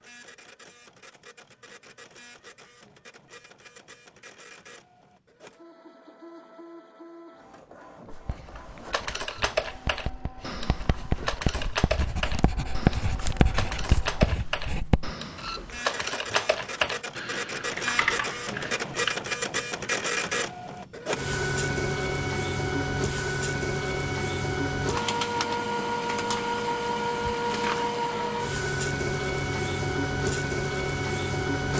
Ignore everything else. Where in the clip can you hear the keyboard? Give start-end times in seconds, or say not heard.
8.6-19.2.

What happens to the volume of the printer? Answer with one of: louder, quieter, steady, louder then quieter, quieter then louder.
louder.